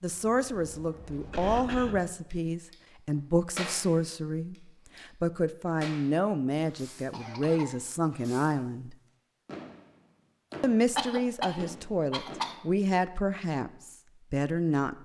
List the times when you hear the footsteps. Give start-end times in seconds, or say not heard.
not heard.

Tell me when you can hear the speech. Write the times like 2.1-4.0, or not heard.
0.0-8.9, 10.6-15.0.